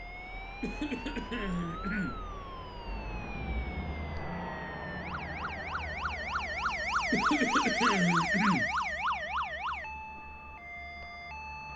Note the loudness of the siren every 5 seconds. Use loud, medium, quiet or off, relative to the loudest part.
quiet, loud, quiet.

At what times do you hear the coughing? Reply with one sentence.
You can hear the coughing from 0.6 to 2.6 s and from 7.1 to 8.7 s.